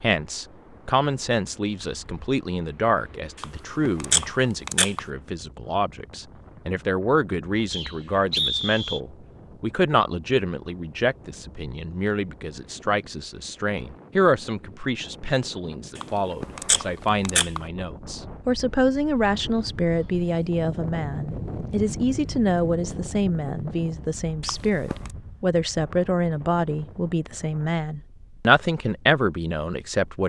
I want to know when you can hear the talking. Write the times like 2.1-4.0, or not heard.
0.0-30.2.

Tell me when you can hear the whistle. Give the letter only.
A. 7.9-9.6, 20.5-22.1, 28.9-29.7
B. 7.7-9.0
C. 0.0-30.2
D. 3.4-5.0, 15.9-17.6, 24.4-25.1
B.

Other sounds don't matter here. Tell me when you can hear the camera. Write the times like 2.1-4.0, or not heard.
3.4-5.0, 15.9-17.6, 24.4-25.1.